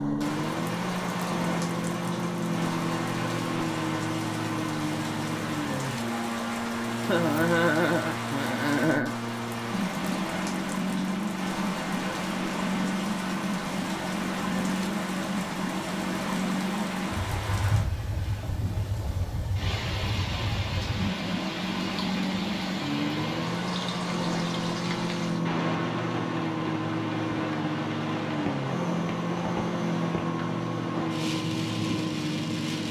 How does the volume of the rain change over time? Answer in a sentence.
The volume of the rain stays about the same.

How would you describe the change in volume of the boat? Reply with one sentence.
The volume of the boat stays about the same.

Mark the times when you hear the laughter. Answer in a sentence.
The laughter can be heard from 7.0 to 9.2 s.